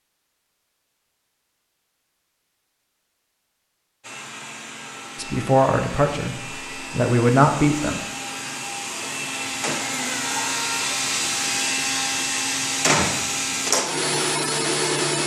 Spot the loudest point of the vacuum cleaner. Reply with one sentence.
The volume of the vacuum cleaner peaks at 13 seconds.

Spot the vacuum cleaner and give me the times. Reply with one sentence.
The vacuum cleaner can be heard from 4.0 to 15.2 s.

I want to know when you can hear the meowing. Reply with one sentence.
You can hear the meowing from 9.9 to 11.0 s.